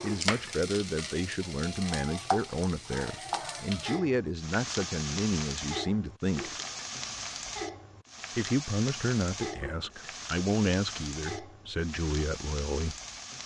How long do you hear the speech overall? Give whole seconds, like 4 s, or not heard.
11 s.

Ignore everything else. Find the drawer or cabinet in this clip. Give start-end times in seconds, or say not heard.
not heard.